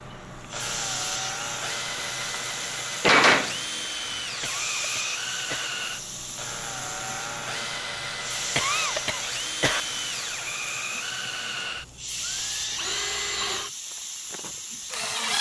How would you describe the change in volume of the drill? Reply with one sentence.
The volume of the drill stays about the same.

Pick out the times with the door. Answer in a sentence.
The door can be heard from 2.3 to 3.5 s.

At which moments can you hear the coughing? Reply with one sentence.
The coughing can be heard from 4.4 to 5.7 s and from 8.6 to 9.8 s.